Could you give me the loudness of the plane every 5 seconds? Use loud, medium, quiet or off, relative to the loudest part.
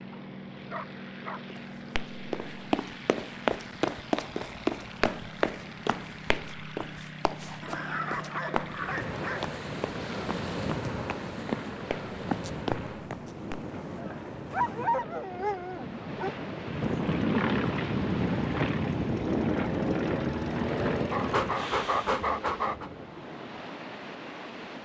quiet, quiet, quiet, loud, loud.